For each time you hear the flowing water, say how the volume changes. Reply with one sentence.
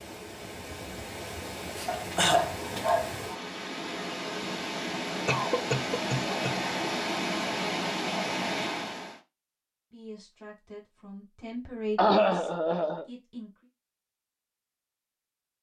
You can hear the flowing water from 0.0 to 9.2 s, getting louder.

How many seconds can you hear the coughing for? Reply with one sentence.
You can hear the coughing for 3 seconds altogether.